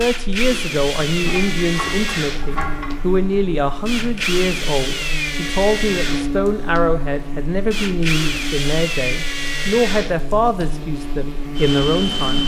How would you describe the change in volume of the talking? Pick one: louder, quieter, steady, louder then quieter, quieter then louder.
steady.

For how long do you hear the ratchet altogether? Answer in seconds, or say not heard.
2 s.